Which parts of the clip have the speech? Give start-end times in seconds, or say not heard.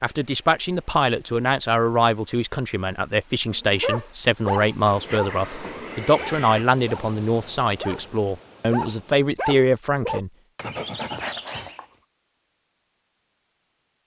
0.0-10.3.